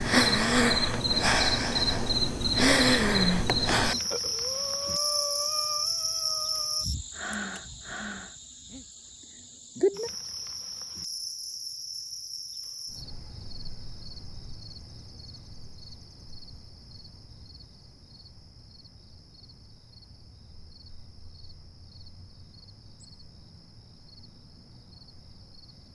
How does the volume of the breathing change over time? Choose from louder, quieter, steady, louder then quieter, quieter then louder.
quieter.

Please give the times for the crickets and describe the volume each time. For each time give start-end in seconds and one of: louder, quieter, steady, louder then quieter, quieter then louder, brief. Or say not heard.
0.0-25.9 quieter.